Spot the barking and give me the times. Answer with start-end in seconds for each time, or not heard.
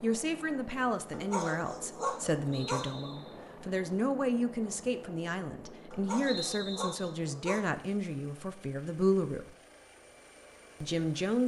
1.1-2.9, 5.9-7.7.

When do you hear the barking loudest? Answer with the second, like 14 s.
2 s.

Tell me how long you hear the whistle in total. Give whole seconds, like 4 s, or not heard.
2 s.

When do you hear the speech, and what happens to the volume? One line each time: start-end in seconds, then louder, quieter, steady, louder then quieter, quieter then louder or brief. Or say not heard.
0.0-9.6 steady
10.8-11.4 brief.